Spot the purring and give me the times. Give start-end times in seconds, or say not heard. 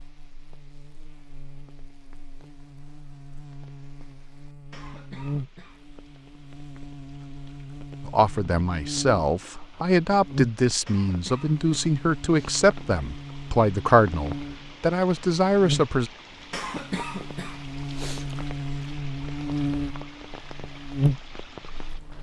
not heard.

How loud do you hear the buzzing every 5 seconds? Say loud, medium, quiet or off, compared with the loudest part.
quiet, medium, medium, loud, loud.